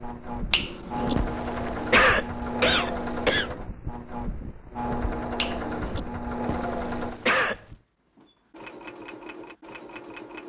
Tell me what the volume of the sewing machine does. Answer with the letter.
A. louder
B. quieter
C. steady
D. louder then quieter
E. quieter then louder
B.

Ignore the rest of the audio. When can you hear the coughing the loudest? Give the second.
2 s.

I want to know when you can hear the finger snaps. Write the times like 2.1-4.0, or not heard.
0.5-1.1, 5.3-6.0.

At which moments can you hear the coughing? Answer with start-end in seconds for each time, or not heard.
1.1-3.5, 6.5-7.6.